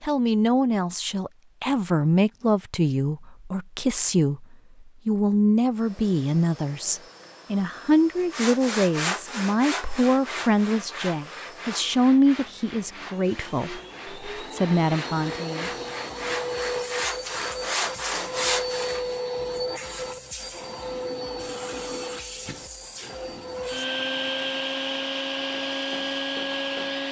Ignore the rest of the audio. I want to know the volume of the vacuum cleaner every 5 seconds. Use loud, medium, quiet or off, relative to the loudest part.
off, quiet, quiet, loud, loud, loud.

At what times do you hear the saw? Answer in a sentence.
The saw can be heard from 8.3 to 19.1 s.